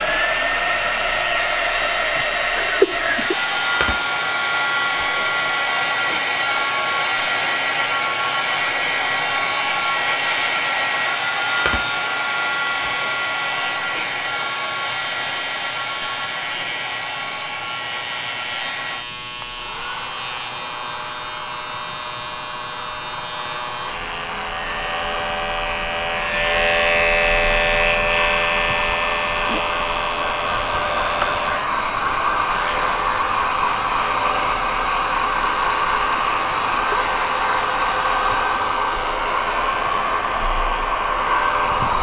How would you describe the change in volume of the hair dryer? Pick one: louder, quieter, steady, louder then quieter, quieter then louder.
quieter then louder.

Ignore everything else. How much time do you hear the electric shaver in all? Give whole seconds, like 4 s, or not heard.
42 s.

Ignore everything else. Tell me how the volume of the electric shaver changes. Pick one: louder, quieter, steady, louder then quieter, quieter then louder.
louder then quieter.